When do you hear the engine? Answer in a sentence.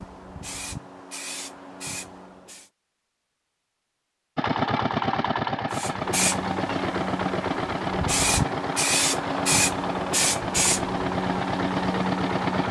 The engine can be heard from 4.3 to 12.6 s.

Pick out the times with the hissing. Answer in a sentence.
You can hear the hissing from 0.0 to 2.7 s and from 5.7 to 12.6 s.